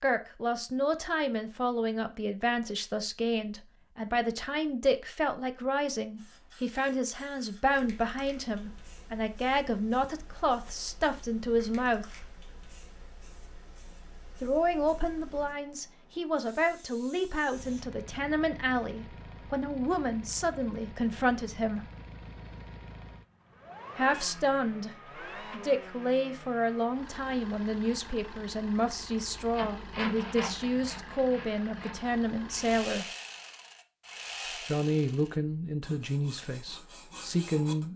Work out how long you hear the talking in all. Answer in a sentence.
You can hear the talking for 32 seconds altogether.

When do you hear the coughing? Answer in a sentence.
The coughing can't be heard in this clip.